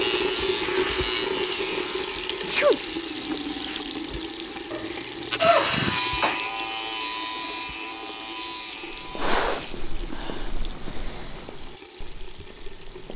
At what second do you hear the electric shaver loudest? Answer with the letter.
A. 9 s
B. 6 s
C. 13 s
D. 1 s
B.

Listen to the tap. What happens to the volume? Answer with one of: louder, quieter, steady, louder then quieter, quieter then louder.
quieter.